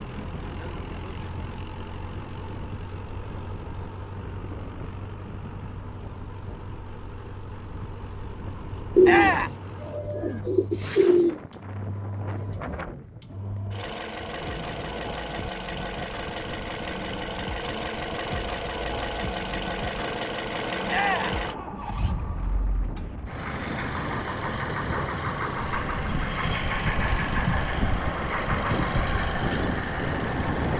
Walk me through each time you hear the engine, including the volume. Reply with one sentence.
The engine can be heard from 0.0 to 30.7 s, getting louder.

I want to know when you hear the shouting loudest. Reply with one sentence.
The volume of the shouting peaks at 9 seconds.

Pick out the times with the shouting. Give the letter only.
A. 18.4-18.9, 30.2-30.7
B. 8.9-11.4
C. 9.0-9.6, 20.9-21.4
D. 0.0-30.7
C.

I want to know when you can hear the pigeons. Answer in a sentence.
You can hear the pigeons from 8.9 to 11.4 s.